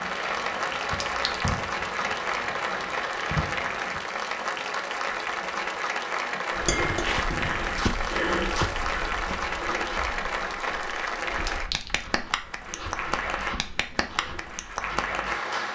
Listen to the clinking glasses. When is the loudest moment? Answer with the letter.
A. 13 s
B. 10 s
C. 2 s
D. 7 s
D.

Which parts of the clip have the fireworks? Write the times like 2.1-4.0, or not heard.
0.0-4.0.